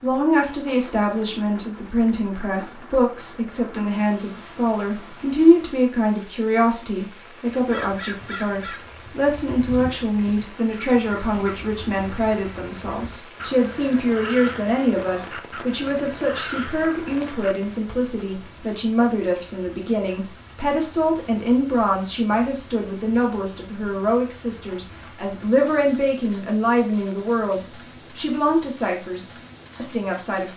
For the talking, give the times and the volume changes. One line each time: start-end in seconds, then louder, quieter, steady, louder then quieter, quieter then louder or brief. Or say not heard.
0.0-30.5 steady.